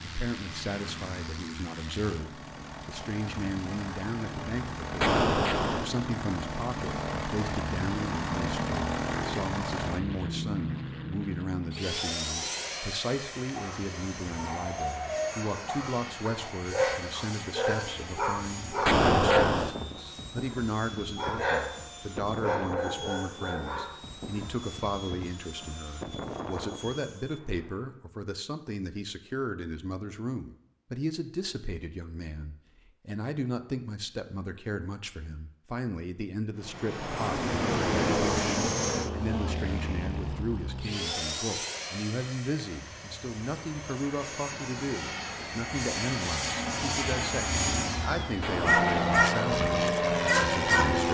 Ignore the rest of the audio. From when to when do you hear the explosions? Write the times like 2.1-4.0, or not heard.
5.0-5.9, 18.9-19.8, 48.4-49.0.